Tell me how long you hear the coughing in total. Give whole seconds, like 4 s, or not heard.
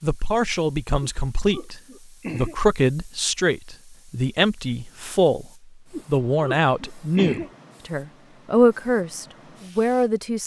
3 s.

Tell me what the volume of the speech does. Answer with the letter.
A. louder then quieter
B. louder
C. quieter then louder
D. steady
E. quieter
D.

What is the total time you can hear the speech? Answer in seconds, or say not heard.
10 s.